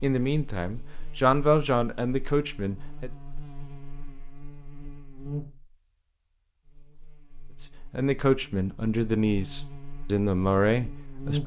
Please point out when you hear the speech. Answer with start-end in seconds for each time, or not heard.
0.0-3.1, 7.6-11.4.